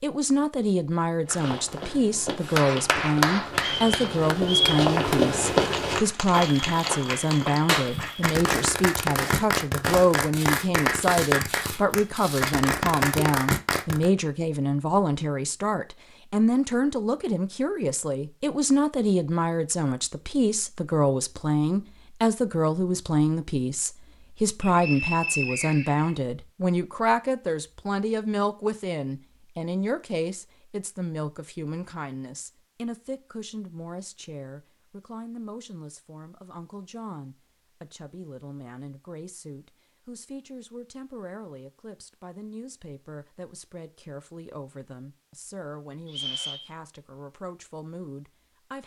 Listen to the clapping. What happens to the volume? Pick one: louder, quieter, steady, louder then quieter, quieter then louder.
quieter then louder.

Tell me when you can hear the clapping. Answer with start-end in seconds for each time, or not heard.
2.4-14.1.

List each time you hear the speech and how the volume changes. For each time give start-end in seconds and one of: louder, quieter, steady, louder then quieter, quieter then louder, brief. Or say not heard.
0.0-48.8 quieter.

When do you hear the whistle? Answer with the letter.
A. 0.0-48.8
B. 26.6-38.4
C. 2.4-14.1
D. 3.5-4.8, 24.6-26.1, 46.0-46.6
D.